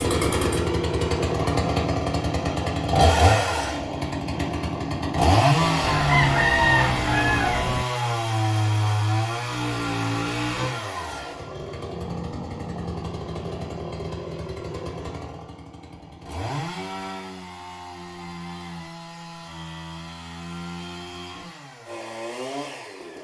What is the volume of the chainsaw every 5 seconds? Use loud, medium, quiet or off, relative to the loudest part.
loud, loud, medium, quiet, quiet.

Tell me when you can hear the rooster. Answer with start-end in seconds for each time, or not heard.
5.8-7.8.